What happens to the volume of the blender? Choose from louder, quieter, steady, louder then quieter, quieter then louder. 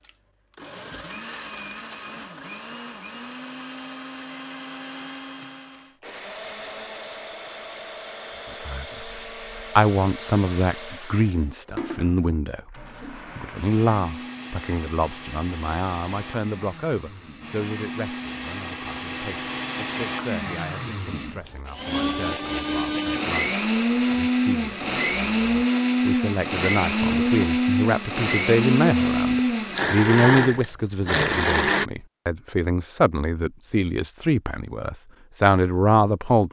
louder.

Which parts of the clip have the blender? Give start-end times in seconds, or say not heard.
0.0-31.9.